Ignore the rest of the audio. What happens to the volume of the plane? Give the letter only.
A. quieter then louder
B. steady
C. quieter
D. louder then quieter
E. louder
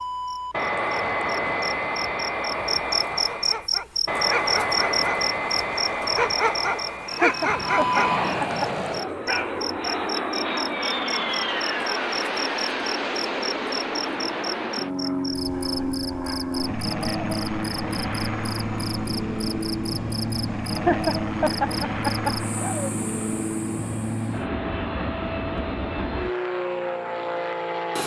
B.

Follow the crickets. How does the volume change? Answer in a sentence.
The volume of the crickets goes down.